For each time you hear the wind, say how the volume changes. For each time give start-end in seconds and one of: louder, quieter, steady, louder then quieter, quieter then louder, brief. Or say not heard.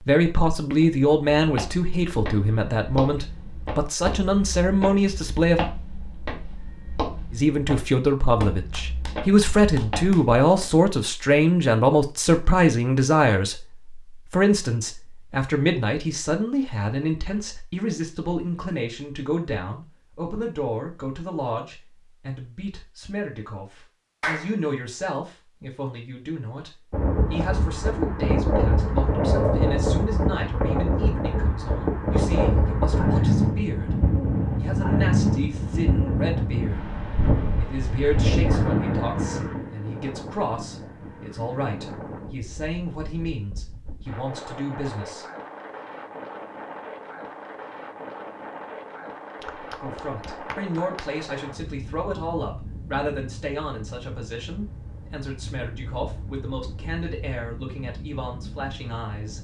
26.9-59.3 quieter.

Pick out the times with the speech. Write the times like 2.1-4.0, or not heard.
0.0-5.7, 7.3-45.2, 49.8-59.3.